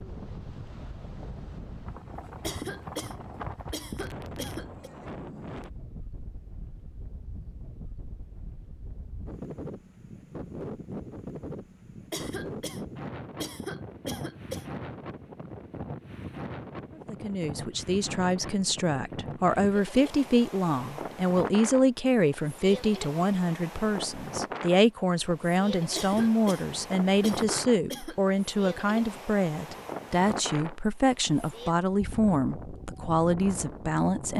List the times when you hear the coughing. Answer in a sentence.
You can hear the coughing from 2.4 to 4.9 s, from 12.1 to 14.7 s and from 25.9 to 28.2 s.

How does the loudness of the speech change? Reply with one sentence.
The volume of the speech stays about the same.